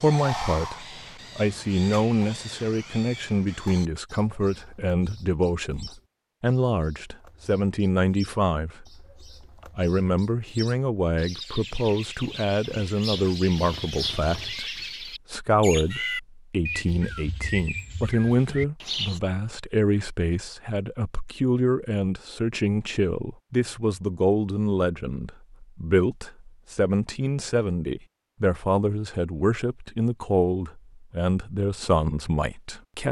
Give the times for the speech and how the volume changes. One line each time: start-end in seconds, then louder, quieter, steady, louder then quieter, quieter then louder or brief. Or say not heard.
0.0-9.1 steady
9.8-33.0 steady.